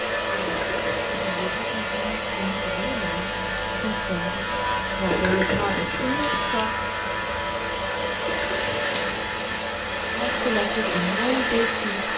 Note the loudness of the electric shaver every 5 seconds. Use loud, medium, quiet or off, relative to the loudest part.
loud, loud, medium.